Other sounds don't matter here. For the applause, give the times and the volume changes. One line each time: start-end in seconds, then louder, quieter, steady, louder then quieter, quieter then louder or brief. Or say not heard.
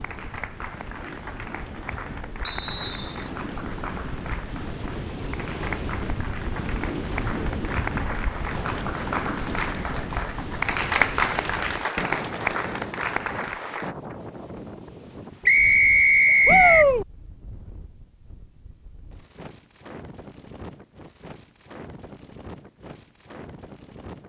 0.0-13.9 louder.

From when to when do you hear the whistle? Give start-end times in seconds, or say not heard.
2.4-3.3, 15.4-16.9.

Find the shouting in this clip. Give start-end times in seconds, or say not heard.
16.4-17.1.